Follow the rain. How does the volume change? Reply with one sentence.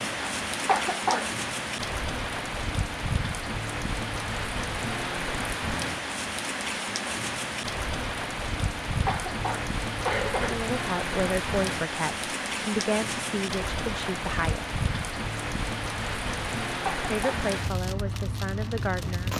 The volume of the rain stays about the same.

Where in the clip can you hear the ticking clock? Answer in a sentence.
The ticking clock can't be heard in this clip.